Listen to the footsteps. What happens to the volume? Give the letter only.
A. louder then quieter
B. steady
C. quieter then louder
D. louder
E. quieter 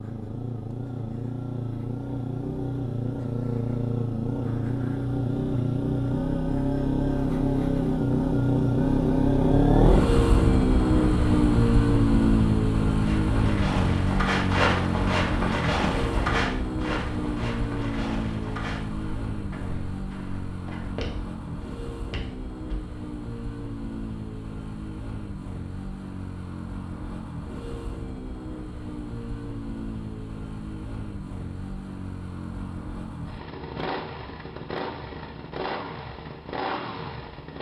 C.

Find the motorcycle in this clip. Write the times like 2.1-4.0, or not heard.
0.0-37.5.